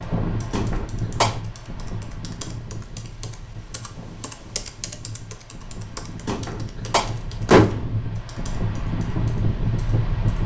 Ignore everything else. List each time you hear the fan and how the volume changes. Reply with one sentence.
The fan can be heard from 0.0 to 10.4 s, getting quieter then louder.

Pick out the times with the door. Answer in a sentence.
You can hear the door from 0.5 to 1.4 s and from 6.2 to 7.9 s.